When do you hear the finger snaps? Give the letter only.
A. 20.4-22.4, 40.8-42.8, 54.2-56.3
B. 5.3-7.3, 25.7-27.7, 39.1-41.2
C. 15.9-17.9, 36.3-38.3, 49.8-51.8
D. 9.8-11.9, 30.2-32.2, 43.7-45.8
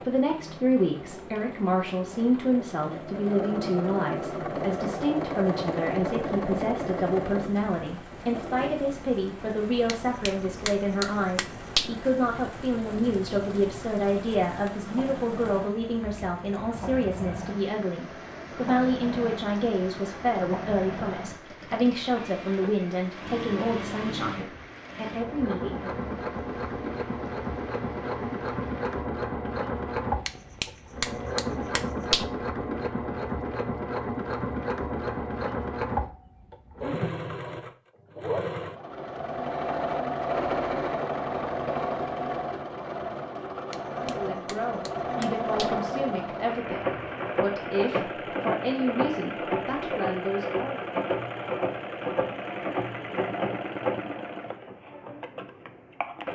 D.